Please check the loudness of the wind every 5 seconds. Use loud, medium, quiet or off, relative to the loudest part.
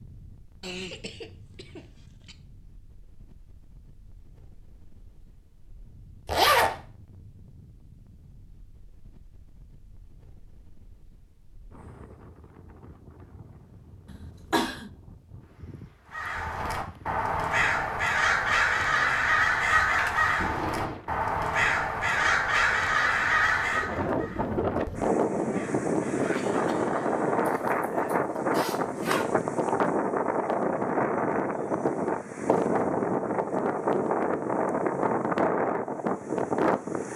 quiet, quiet, quiet, quiet, medium, loud, loud, loud.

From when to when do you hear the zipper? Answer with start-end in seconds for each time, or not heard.
6.2-6.8, 20.4-21.0, 27.4-29.2.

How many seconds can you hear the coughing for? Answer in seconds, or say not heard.
3 s.